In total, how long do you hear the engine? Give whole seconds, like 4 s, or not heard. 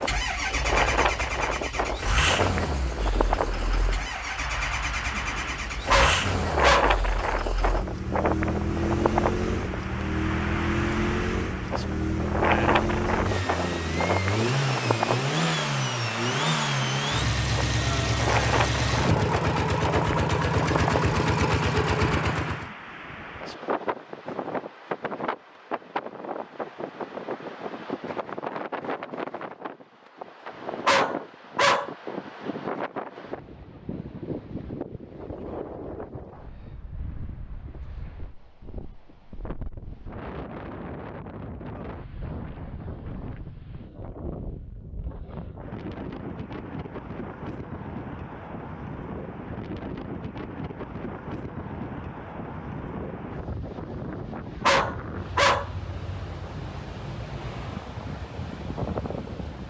23 s.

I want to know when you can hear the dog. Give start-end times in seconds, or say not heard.
5.9-7.0, 30.9-31.9, 54.6-55.7.